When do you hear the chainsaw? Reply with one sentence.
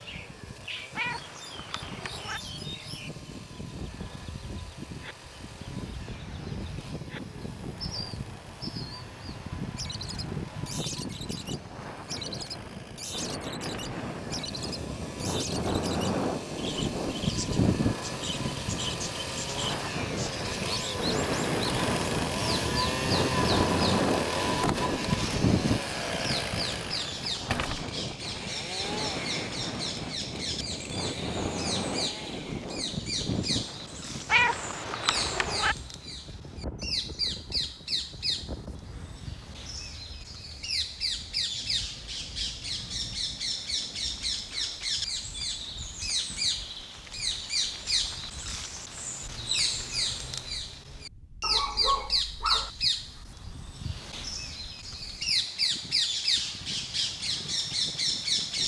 The chainsaw can be heard from 0.0 to 32.6 s.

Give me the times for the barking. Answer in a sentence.
The barking can be heard from 51.4 to 52.7 s.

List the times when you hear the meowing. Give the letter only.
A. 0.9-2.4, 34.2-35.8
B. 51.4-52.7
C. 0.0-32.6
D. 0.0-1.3
A.